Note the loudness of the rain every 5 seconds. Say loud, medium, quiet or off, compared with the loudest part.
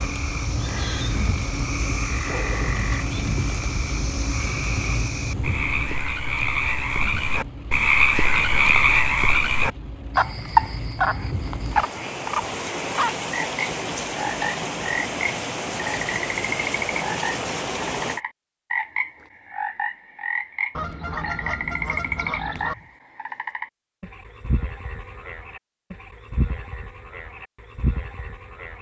loud, medium, loud, loud, off, off.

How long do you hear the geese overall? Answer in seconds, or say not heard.
2 s.